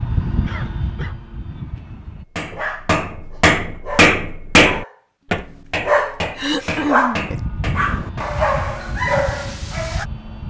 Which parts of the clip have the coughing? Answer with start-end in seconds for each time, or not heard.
0.4-1.1, 6.3-7.3.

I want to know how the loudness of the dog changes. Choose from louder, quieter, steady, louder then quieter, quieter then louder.
louder.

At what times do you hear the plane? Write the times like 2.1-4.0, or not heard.
0.0-2.2, 7.2-10.4.